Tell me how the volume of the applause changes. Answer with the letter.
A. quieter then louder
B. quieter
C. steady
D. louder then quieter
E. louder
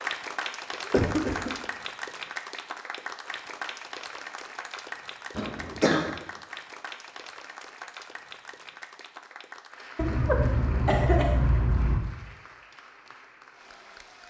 B.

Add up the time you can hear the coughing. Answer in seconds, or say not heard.
4 s.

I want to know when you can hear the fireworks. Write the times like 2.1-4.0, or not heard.
not heard.